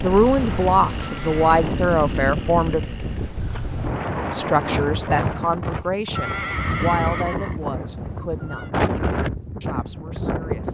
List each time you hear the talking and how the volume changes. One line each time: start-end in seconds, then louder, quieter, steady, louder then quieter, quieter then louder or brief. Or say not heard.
0.0-2.8 brief
4.3-10.6 quieter.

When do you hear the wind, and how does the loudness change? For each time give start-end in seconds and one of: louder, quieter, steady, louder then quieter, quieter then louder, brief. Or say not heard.
0.0-10.6 steady.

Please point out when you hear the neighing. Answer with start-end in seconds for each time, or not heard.
1.0-1.4, 6.2-8.7.